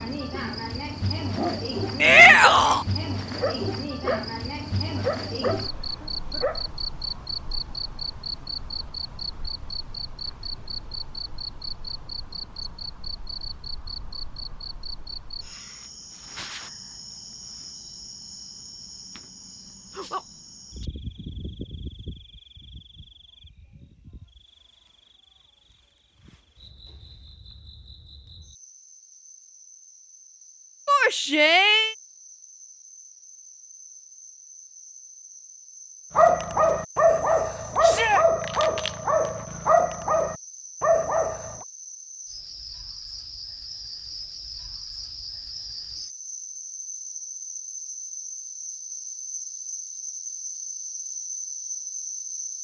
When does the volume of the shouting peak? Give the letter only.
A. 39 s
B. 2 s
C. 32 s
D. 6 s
B.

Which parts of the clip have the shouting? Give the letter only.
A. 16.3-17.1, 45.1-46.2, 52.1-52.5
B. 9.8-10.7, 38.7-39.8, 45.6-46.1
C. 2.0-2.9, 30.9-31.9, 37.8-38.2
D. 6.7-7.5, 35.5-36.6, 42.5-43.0
C.